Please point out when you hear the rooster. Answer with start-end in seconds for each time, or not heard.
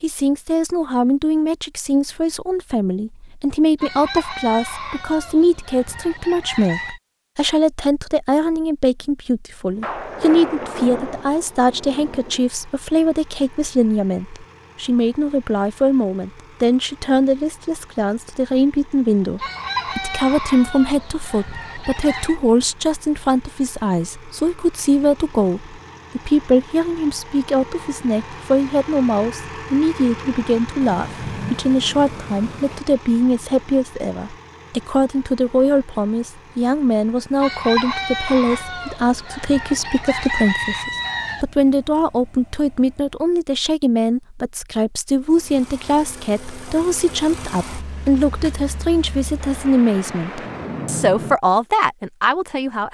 3.8-7.0, 19.4-22.4, 37.4-41.5.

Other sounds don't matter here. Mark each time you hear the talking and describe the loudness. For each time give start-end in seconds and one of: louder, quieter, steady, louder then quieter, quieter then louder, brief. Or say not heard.
0.0-52.9 steady.